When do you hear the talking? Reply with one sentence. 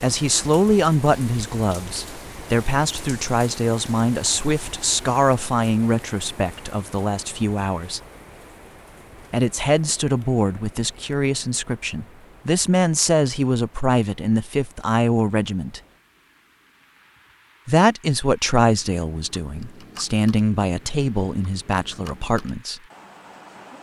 You can hear the talking from 0.0 to 8.0 s, from 9.3 to 15.8 s and from 17.6 to 22.8 s.